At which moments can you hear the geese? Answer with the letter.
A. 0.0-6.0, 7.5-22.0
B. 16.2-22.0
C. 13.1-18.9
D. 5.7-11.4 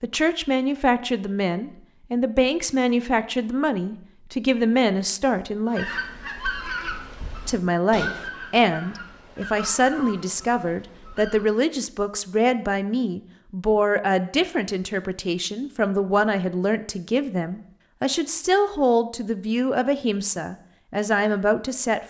D.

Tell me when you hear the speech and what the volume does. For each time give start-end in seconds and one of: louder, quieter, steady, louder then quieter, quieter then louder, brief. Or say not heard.
0.0-6.0 steady
7.5-22.0 steady.